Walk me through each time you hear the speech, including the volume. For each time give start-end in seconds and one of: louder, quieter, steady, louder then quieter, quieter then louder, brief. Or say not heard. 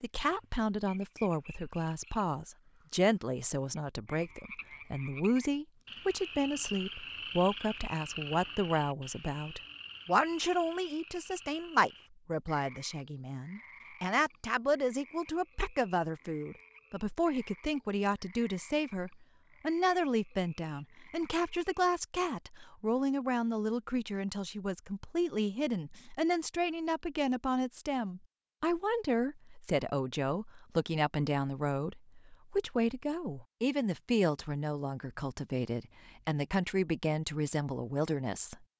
0.0-38.6 steady.